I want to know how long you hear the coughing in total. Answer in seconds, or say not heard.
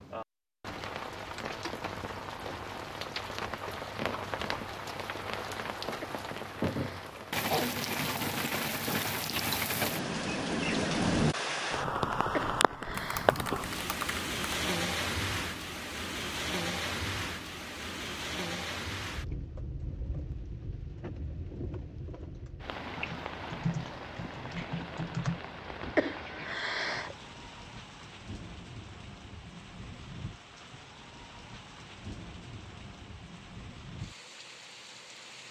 4 s.